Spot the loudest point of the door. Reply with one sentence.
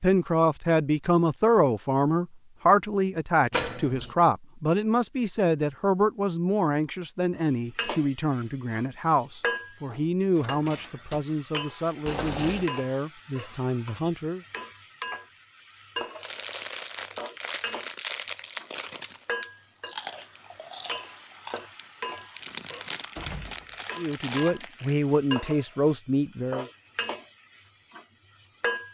The loudest moment of the door is at 4 seconds.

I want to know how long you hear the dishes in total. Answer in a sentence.
You can't hear the dishes here.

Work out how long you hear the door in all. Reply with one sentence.
The door can be heard for 3 seconds in total.